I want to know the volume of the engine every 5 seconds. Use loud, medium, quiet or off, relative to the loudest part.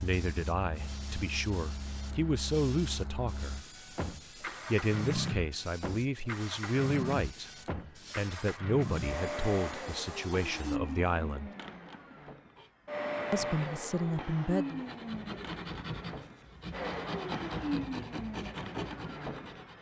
medium, loud, loud, loud.